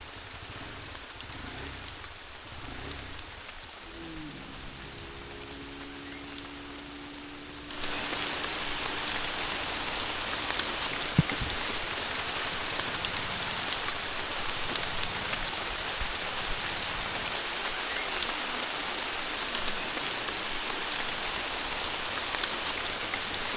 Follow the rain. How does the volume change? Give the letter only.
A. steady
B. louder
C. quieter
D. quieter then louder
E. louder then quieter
B.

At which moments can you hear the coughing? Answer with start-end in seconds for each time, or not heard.
11.2-12.0.